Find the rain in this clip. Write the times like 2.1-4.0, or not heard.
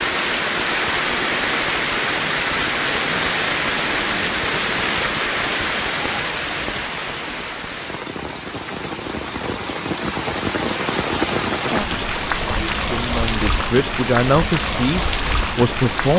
0.0-16.1.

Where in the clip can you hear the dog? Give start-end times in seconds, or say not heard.
not heard.